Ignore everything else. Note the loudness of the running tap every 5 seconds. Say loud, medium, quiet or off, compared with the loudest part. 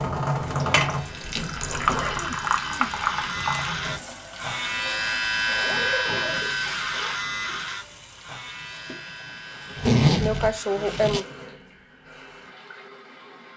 loud, quiet, quiet.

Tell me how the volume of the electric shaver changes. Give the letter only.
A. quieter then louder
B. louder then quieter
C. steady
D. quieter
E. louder
B.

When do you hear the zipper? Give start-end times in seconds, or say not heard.
1.4-2.2, 5.5-7.2, 9.8-11.2.